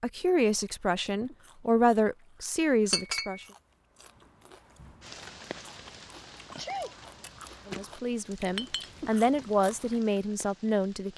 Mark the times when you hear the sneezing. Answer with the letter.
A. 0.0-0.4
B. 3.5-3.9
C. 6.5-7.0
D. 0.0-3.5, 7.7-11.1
C.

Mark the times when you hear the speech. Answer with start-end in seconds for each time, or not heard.
0.0-3.5, 7.7-11.1.